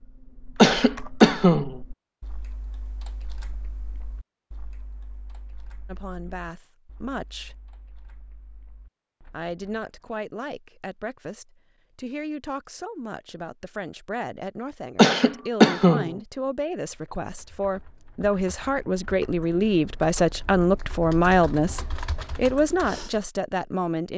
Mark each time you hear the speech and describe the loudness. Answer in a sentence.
You can hear the speech briefly from 5.8 to 7.5 s; and from 9.3 to 24.1 s, getting louder.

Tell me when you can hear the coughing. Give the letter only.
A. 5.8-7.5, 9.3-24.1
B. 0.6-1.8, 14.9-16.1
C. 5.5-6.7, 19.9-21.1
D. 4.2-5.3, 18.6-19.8
B.